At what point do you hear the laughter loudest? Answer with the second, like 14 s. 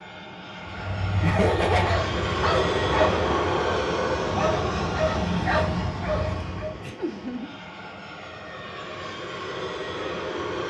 2 s.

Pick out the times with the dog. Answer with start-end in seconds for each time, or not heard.
0.7-6.9.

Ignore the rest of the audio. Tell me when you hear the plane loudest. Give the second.
3 s.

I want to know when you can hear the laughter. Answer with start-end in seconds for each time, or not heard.
1.2-2.0, 7.0-7.5.